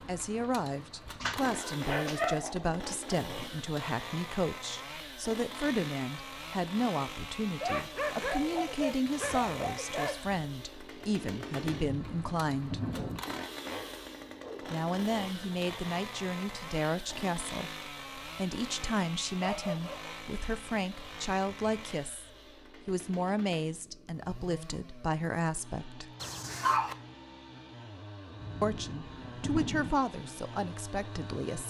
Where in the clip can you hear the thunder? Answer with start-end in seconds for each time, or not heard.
11.8-13.2, 28.4-29.9.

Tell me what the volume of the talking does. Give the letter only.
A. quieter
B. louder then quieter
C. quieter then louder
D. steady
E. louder
D.